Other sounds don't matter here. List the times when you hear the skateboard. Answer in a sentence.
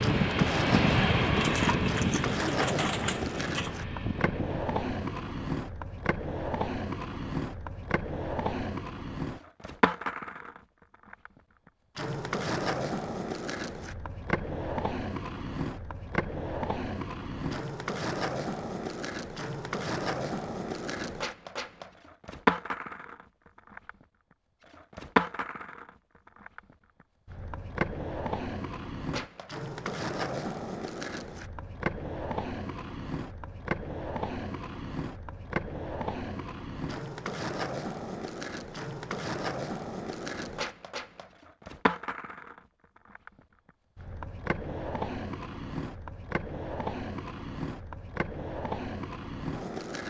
You can hear the skateboard from 0.0 to 50.0 s.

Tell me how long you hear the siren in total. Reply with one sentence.
You can't hear the siren here.